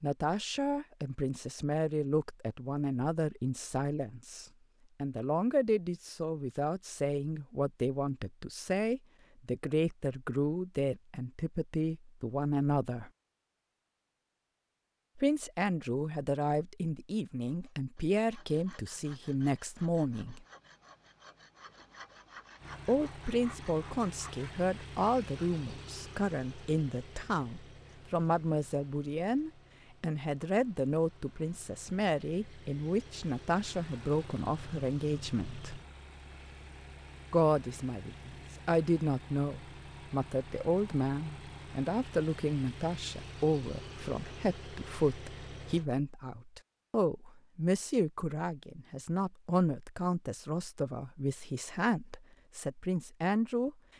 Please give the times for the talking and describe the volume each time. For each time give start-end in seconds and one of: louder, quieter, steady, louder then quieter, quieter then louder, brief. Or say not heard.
0.0-13.1 steady
15.2-20.4 steady
22.9-35.8 steady
37.3-53.8 steady.